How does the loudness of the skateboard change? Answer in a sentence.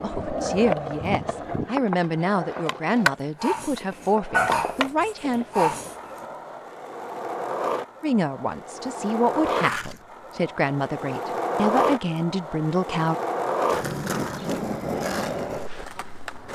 The volume of the skateboard goes down, then up.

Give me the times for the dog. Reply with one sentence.
You can hear the dog from 3.4 to 6.0 s.